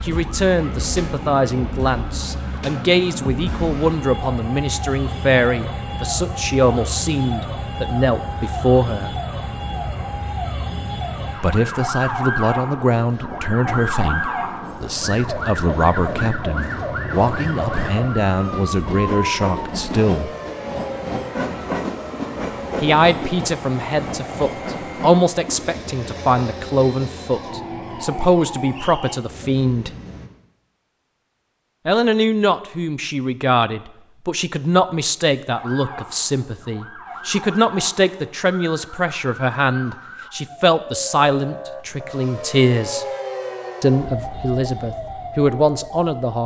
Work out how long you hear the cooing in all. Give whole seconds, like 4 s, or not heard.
not heard.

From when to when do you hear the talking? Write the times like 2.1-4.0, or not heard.
0.0-9.2, 11.4-20.3, 22.8-29.9, 31.9-43.0, 43.8-46.4.